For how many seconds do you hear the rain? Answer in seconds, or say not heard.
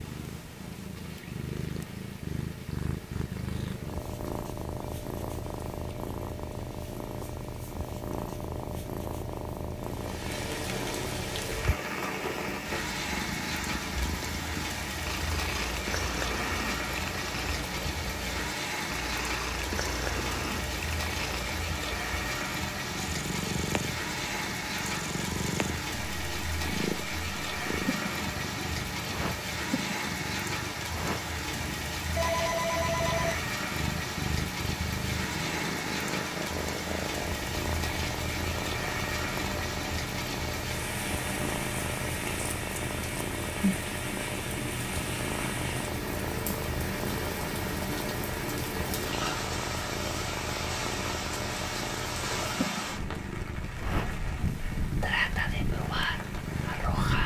57 s.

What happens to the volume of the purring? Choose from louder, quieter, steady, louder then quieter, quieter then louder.
steady.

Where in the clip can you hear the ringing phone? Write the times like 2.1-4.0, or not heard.
32.1-33.5.